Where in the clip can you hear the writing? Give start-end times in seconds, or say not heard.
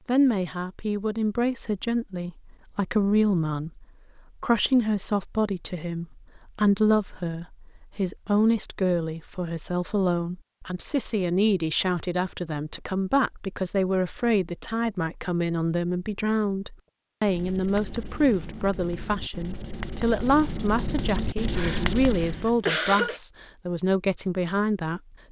17.2-22.6.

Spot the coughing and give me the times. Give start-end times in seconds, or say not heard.
21.6-23.2.